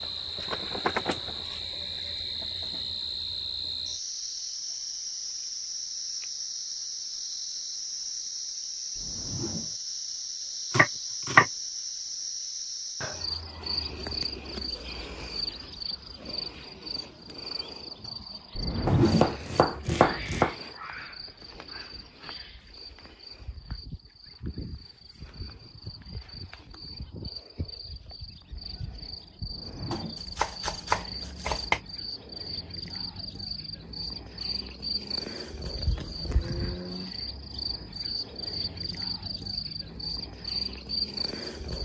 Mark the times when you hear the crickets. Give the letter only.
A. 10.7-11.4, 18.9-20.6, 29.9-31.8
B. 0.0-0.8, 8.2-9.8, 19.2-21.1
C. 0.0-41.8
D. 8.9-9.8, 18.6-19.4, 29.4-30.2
C.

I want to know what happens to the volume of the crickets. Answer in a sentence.
The loudness of the crickets goes down, then up.